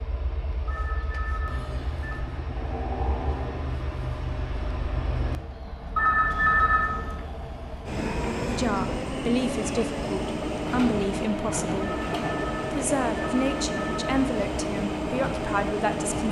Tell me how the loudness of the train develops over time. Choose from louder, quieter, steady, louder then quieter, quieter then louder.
louder.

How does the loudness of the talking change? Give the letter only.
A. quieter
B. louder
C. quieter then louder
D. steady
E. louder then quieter
D.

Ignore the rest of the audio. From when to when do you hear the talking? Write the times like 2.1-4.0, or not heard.
8.4-12.0, 12.7-16.2.